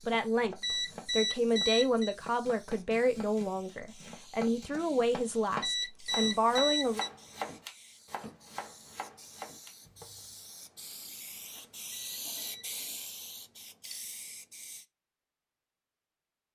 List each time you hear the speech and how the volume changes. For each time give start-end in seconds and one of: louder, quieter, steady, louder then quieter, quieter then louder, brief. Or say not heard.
0.1-7.0 steady.